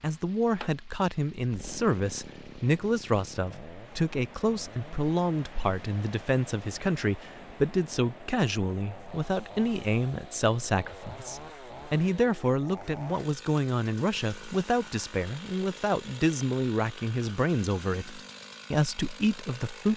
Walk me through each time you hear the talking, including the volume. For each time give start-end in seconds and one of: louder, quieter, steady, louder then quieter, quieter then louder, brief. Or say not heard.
0.0-19.9 steady.